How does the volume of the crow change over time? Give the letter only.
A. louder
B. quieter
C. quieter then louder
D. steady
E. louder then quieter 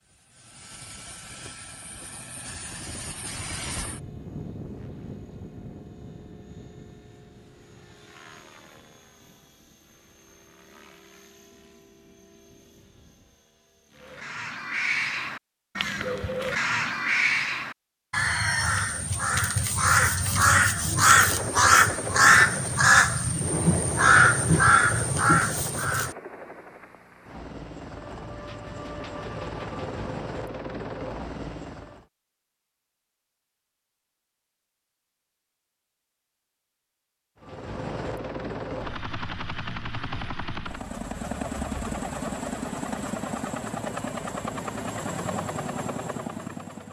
A.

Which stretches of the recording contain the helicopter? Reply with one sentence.
You can hear the helicopter from 0.0 to 14.5 s, from 20.9 to 32.0 s and from 37.4 to 46.8 s.